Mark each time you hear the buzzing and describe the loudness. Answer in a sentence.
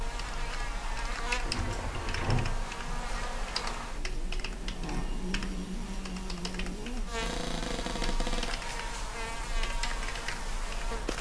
The buzzing can be heard from 0.0 to 11.1 s, at a steady volume.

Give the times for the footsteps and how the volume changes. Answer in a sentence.
The footsteps can't be heard in this clip.